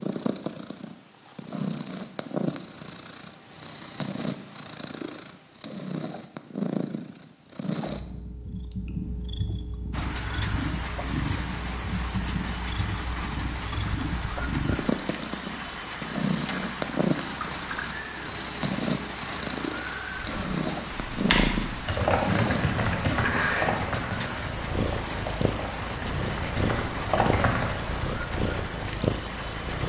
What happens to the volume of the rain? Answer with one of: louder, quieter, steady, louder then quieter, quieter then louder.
steady.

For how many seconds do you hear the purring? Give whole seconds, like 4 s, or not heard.
30 s.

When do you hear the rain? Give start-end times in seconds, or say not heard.
9.9-29.8.